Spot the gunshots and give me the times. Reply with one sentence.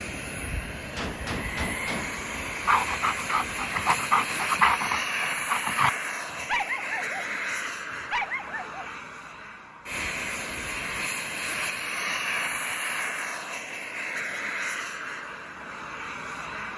The gunshots can be heard from 0.9 to 2.1 s.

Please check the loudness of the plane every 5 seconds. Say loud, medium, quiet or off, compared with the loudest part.
loud, loud, loud, medium.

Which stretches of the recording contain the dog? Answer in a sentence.
You can hear the dog from 2.6 to 7.3 s and from 7.9 to 8.8 s.